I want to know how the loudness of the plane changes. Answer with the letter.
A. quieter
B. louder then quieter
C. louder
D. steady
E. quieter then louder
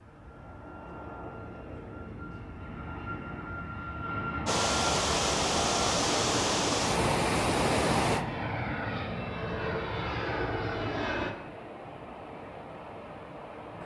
C.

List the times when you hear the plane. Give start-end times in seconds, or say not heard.
0.0-11.3.